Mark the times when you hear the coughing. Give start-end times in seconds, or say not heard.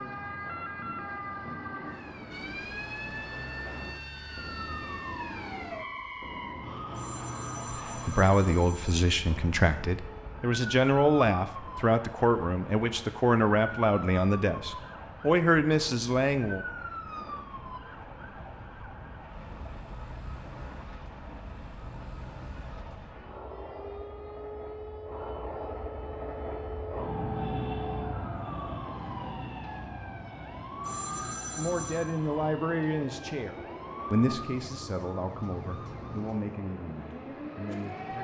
not heard.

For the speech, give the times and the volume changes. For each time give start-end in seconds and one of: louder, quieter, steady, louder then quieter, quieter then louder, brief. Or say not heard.
7.7-16.6 steady
31.6-38.1 quieter.